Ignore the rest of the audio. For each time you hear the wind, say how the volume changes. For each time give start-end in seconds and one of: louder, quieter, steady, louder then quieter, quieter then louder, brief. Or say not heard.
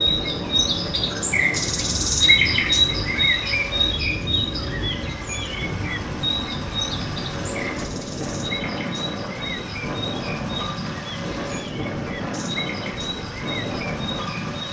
0.0-14.6 steady.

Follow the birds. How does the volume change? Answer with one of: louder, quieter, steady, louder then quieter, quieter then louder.
quieter.